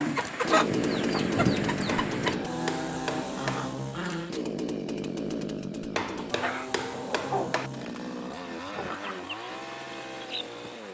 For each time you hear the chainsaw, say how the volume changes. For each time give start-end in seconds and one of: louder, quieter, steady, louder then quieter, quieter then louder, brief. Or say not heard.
0.2-10.8 quieter.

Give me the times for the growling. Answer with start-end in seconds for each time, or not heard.
2.4-4.3.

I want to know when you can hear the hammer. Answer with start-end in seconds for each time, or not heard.
1.9-3.6, 6.0-7.7.